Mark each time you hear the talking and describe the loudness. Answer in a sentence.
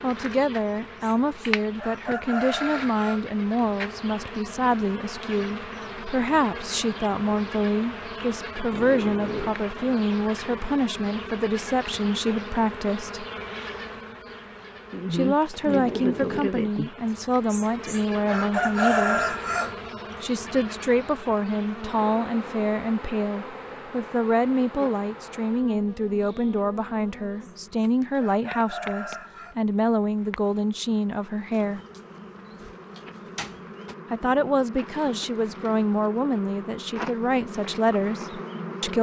You can hear the talking from 0.0 to 13.2 s, at a steady volume; from 15.1 to 19.4 s, at a steady volume; from 20.2 to 31.8 s, at a steady volume; and from 34.1 to 38.9 s, at a steady volume.